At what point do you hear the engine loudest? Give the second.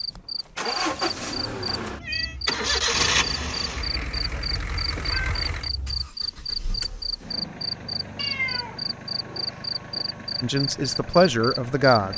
3 s.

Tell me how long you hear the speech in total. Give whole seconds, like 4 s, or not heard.
2 s.